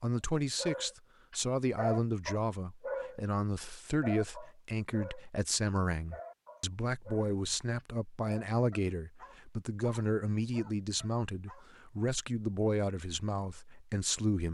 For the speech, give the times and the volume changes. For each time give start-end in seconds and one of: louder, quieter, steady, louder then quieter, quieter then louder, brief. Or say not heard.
0.0-14.5 steady.